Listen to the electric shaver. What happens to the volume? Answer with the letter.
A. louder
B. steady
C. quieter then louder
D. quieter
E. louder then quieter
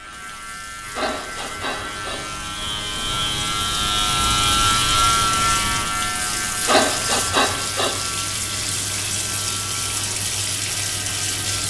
E.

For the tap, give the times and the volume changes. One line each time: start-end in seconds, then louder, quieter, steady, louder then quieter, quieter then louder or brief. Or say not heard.
0.0-11.6 louder.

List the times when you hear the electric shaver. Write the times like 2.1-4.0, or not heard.
0.0-11.6.